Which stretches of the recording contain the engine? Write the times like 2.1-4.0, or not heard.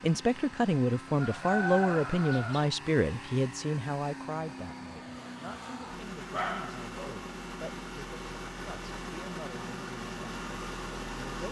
0.0-11.4.